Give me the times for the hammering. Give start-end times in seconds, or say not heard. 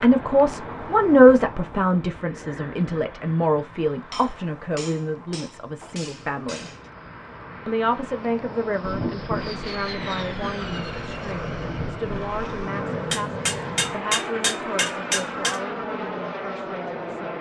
4.1-6.8, 13.1-15.6.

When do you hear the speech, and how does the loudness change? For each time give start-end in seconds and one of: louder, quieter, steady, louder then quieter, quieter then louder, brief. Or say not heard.
0.0-6.7 quieter
7.7-17.3 quieter.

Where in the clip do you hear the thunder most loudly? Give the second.
9 s.